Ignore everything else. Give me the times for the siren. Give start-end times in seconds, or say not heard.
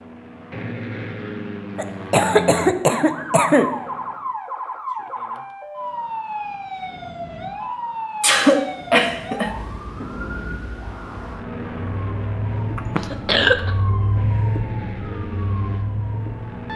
3.0-16.7.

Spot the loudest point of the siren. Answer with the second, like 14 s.
14 s.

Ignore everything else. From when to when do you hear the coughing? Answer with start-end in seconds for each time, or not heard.
1.8-3.8, 8.2-9.6, 12.8-13.7.